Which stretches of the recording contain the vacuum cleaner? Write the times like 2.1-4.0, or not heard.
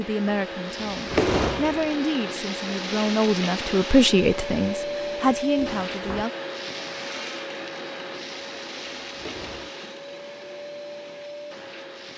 0.0-12.1.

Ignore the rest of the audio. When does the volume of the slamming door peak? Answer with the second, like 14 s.
1 s.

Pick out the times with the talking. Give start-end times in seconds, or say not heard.
0.0-6.3.